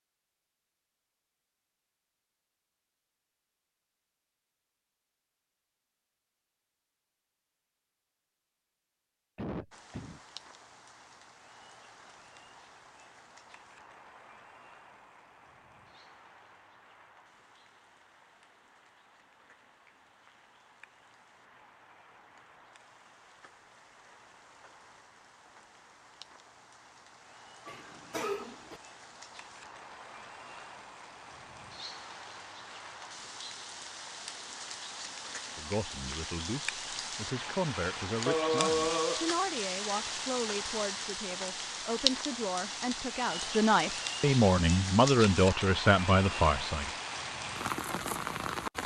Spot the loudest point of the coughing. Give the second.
39 s.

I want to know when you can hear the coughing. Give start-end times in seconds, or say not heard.
9.3-10.2, 27.6-28.8, 38.2-39.3.